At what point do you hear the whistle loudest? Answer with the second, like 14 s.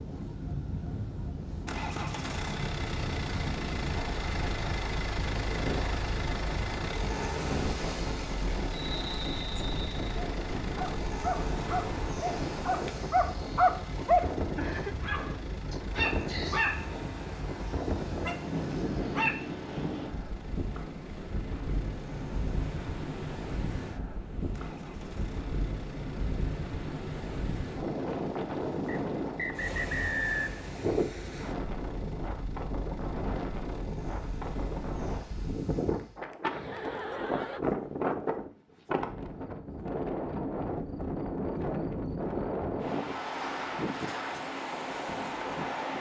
30 s.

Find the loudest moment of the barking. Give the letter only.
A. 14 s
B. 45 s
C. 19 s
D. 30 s
A.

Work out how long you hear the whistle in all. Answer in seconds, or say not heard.
3 s.